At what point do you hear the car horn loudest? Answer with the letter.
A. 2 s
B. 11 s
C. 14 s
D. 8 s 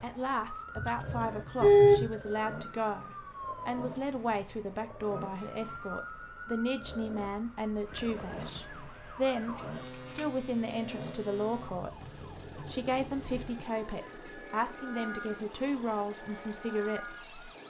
A.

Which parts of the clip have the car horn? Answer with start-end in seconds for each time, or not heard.
0.8-2.1, 9.6-10.2.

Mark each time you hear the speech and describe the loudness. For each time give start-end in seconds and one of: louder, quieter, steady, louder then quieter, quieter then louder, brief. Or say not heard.
0.0-17.4 steady.